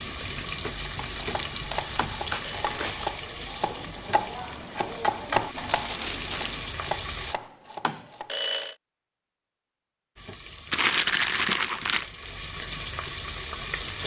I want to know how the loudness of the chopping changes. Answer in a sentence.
The volume of the chopping goes up, then down.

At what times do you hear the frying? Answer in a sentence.
You can hear the frying from 0.0 to 7.3 s and from 10.2 to 14.0 s.